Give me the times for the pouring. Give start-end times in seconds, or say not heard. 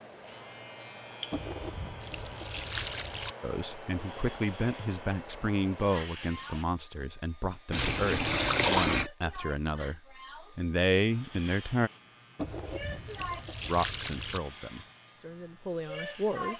1.3-3.4, 7.7-9.1, 12.3-14.4.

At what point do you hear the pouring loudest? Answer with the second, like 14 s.
9 s.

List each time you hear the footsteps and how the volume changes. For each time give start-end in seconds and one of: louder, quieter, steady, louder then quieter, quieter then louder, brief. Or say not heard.
not heard.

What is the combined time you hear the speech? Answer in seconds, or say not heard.
11 s.